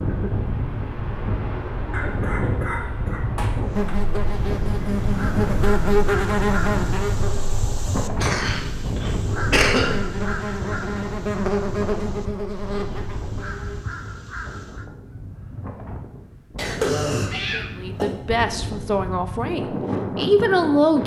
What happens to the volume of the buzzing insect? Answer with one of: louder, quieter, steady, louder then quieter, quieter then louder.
quieter then louder.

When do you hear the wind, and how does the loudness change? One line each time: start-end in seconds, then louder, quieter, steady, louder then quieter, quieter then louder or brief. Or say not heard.
0.0-21.0 quieter then louder.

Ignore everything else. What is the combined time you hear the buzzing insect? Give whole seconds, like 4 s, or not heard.
10 s.